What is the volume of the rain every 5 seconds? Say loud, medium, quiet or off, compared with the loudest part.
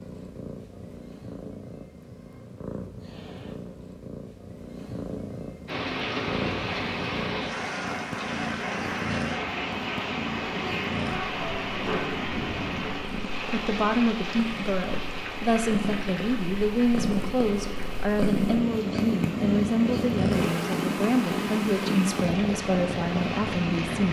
off, loud, loud, medium, loud.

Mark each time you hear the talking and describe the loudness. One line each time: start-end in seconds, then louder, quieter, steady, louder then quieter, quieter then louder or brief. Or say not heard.
13.4-24.0 steady.